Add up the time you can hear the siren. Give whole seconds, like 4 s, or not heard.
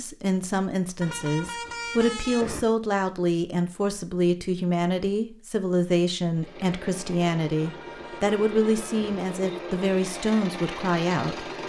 not heard.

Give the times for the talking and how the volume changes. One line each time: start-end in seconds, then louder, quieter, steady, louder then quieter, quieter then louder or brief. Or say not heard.
0.0-11.4 steady.